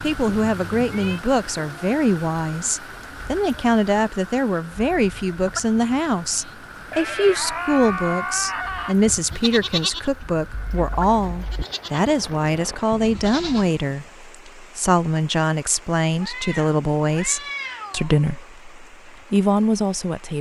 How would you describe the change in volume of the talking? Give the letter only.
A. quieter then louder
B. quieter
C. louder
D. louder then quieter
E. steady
E.